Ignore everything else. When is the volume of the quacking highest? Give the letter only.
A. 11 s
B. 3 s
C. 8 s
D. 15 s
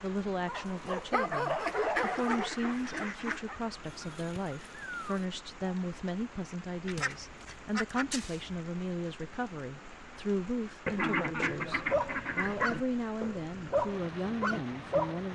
A.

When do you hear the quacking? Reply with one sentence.
You can hear the quacking from 1.6 to 3.5 s, from 6.8 to 8.6 s and from 10.8 to 12.8 s.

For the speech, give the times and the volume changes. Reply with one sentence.
You can hear the speech from 0.0 to 15.3 s, at a steady volume.